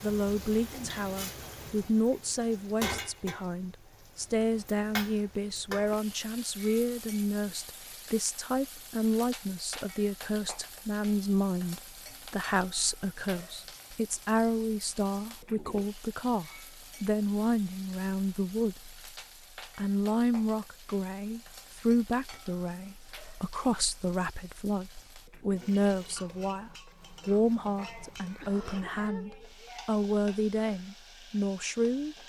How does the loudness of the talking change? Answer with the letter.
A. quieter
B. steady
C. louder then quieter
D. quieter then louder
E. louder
B.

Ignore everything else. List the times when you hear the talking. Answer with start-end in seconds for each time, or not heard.
0.0-19.0, 19.8-32.1.